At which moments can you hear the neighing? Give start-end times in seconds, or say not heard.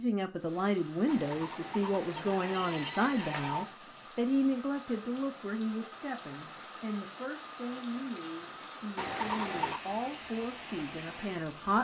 1.1-3.7, 8.9-9.8.